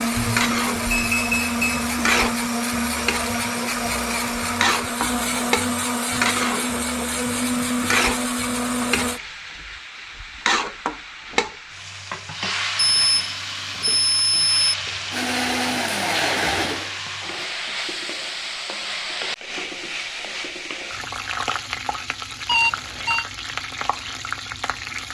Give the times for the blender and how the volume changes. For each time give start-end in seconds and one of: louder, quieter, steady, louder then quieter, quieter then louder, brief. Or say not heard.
0.0-9.2 steady
15.1-17.4 brief.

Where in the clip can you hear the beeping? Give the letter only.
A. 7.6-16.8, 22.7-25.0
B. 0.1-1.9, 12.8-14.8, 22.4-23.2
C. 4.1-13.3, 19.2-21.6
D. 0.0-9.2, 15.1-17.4
B.